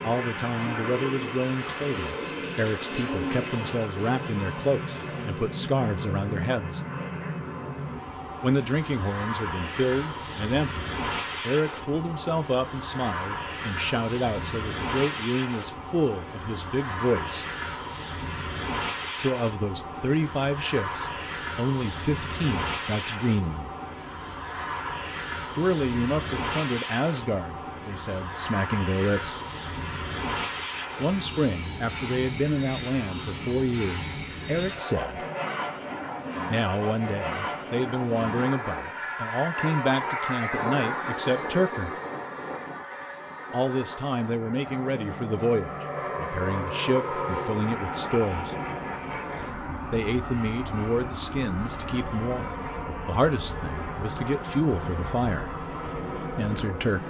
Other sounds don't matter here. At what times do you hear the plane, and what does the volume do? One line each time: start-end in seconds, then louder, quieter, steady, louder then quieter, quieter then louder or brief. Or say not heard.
0.0-57.0 steady.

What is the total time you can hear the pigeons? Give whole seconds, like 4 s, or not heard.
3 s.